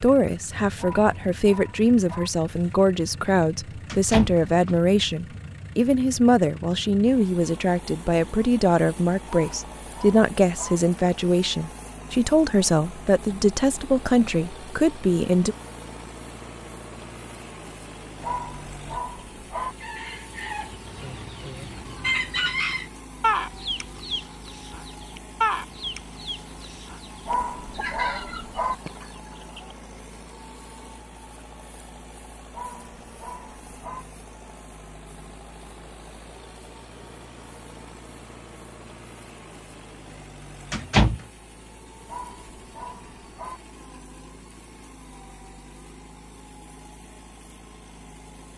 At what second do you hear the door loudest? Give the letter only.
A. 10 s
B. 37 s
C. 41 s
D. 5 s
C.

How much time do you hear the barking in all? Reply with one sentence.
The barking can be heard for 9 seconds in total.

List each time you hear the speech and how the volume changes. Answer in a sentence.
The speech can be heard from 0.0 to 15.6 s, at a steady volume.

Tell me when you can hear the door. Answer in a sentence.
The door can be heard from 3.9 to 4.8 s and from 40.7 to 41.2 s.